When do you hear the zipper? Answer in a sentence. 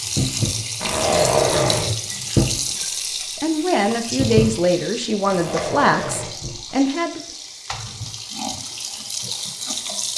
You can hear the zipper from 0.8 to 1.9 s and from 5.2 to 6.3 s.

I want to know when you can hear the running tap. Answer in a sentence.
The running tap can be heard from 0.0 to 10.1 s.